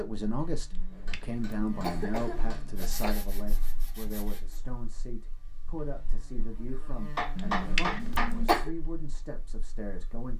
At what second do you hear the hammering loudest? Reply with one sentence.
The volume of the hammering peaks at 8 seconds.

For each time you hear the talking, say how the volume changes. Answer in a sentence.
You can hear the talking from 0.0 to 10.3 s, getting quieter.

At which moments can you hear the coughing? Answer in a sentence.
The coughing can be heard from 0.7 to 3.2 s and from 7.3 to 8.7 s.